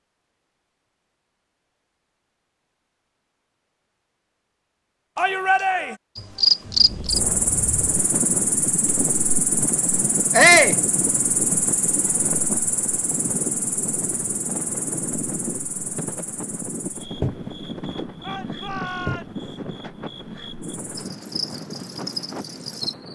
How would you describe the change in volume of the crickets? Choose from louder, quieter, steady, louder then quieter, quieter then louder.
quieter.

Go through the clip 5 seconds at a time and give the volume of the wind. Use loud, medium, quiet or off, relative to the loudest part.
off, loud, loud, loud, medium.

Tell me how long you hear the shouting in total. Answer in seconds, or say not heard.
3 s.